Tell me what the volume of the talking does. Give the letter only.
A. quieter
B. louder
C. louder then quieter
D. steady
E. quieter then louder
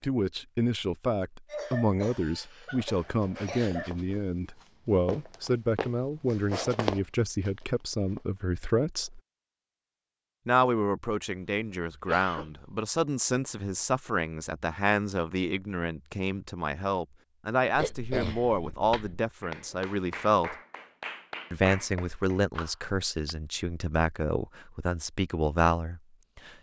D.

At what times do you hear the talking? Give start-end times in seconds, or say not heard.
0.0-9.2, 10.4-20.6, 21.5-26.5.